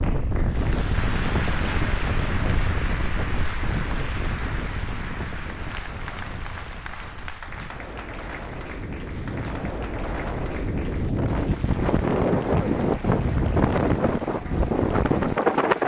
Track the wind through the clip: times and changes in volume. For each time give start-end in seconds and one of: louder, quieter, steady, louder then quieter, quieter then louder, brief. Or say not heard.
0.0-15.8 quieter then louder.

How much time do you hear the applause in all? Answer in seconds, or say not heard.
16 s.